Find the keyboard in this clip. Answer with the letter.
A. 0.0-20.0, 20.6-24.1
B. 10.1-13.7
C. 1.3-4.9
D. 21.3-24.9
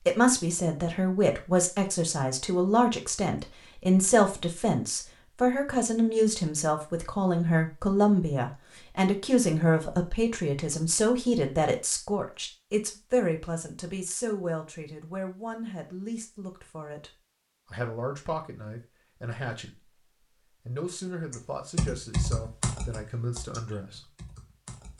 D.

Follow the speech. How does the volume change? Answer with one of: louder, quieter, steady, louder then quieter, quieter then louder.
quieter.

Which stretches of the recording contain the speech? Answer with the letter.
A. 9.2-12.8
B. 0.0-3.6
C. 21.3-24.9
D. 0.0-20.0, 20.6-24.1
D.